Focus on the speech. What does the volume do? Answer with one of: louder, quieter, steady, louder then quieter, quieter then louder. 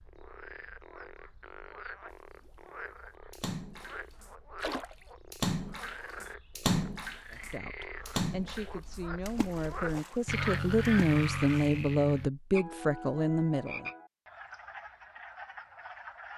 louder.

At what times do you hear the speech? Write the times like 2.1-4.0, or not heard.
7.3-13.9.